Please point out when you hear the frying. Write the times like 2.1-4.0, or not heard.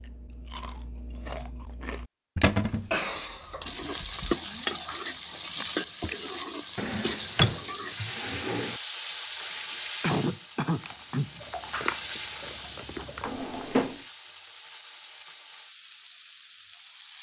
3.6-17.1.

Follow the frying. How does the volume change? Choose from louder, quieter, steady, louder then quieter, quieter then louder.
quieter.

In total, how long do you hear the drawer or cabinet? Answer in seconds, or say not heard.
3 s.